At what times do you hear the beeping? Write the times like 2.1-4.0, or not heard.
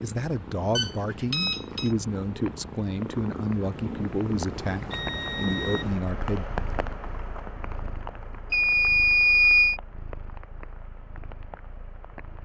0.8-1.9, 4.7-6.0, 8.5-9.8.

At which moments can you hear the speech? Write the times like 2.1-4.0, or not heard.
0.0-6.5.